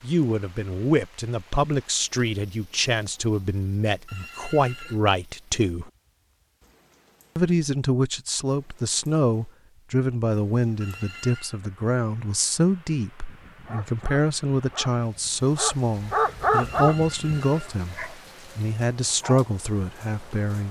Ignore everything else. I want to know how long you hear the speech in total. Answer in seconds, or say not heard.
19 s.